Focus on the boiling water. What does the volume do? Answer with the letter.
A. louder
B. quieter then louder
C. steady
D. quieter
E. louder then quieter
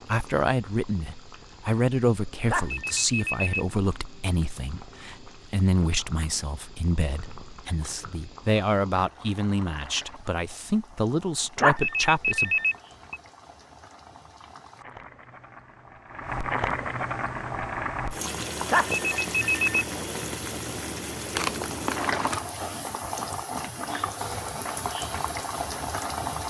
A.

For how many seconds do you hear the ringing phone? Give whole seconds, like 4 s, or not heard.
4 s.